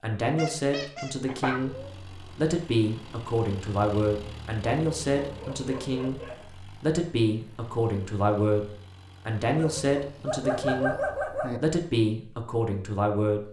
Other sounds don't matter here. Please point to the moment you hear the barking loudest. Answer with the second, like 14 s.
11 s.